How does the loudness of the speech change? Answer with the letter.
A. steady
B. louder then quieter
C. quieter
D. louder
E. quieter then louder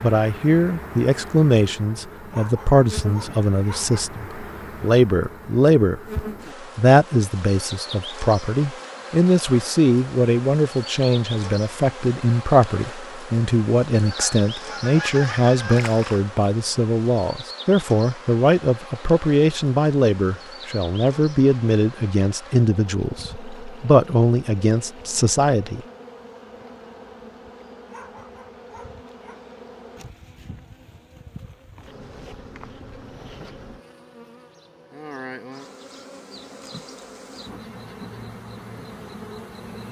A.